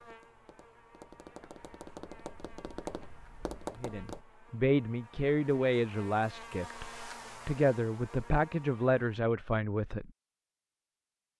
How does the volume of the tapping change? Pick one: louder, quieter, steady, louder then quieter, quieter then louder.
louder.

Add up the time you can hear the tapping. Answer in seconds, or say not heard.
4 s.